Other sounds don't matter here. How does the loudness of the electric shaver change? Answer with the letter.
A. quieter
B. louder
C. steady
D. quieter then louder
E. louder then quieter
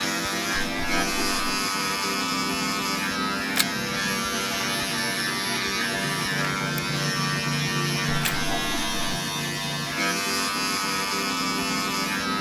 C.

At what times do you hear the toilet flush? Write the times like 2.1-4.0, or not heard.
0.5-1.6, 8.2-9.2.